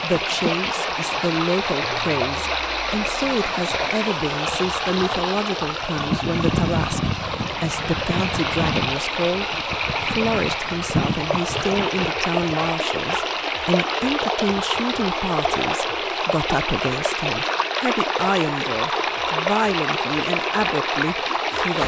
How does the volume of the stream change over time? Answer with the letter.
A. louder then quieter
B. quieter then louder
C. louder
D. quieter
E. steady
E.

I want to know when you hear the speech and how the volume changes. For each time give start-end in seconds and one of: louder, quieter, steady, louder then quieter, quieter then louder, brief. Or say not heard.
0.0-21.8 steady.